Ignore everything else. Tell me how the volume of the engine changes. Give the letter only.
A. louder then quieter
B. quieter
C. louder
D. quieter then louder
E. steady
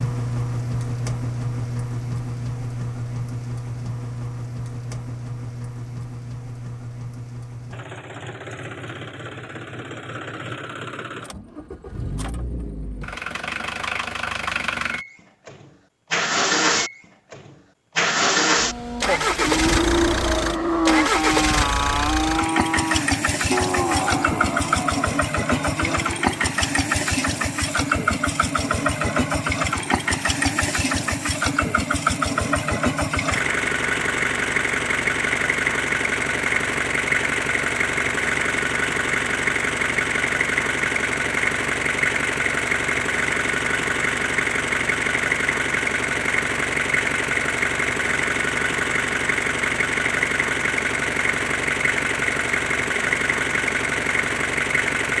C.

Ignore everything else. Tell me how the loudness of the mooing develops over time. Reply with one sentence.
The loudness of the mooing goes down.